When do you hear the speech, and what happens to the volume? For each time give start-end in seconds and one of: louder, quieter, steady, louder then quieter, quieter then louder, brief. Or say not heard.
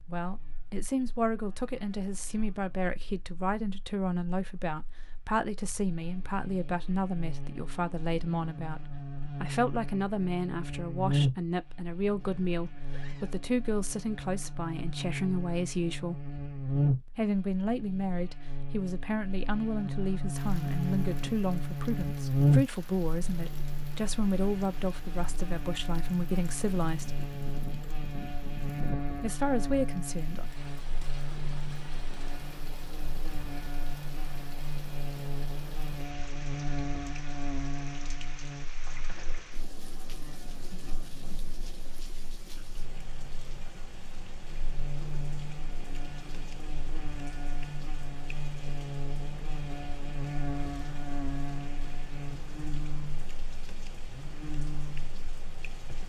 0.1-16.3 steady
17.1-27.2 steady
29.1-30.4 brief.